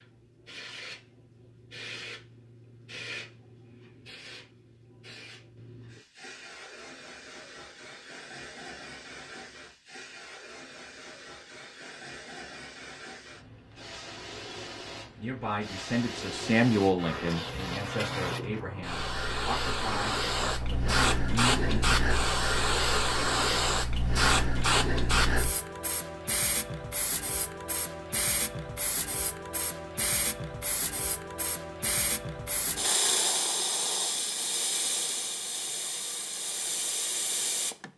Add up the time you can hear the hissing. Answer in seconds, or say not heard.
38 s.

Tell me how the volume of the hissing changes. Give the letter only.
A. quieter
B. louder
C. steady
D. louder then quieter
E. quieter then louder
B.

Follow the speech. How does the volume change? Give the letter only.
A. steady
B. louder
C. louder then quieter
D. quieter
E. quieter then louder
D.